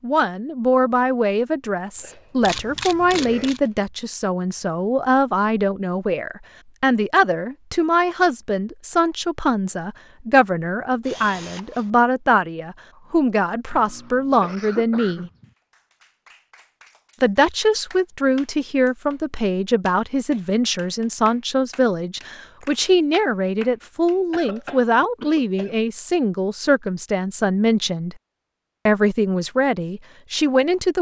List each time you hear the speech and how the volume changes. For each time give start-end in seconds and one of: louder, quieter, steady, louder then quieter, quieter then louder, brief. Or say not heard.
0.0-15.3 steady
17.2-28.1 steady
28.9-30.9 brief.